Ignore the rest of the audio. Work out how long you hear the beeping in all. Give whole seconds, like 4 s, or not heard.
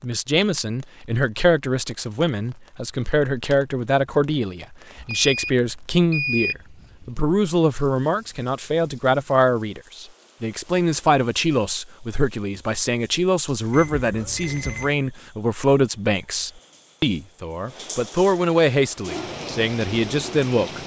3 s.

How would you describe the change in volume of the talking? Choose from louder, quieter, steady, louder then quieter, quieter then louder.
steady.